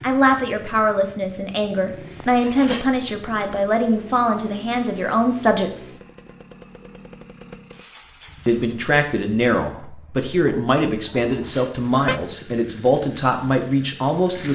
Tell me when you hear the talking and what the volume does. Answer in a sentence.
The talking can be heard from 0.0 to 5.9 s, at a steady volume; and from 8.4 to 14.5 s, at a steady volume.